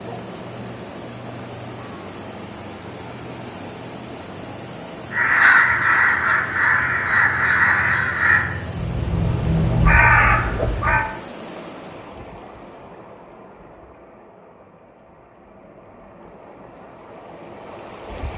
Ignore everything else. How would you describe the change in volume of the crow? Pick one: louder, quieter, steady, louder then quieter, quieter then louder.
quieter then louder.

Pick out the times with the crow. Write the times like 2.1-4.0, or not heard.
5.1-11.1.